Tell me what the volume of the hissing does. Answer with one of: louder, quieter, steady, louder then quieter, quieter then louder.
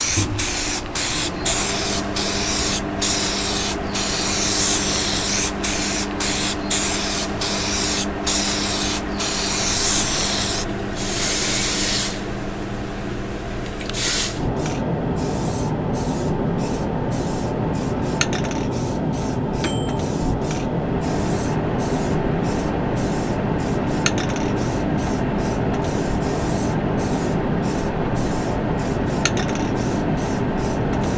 steady.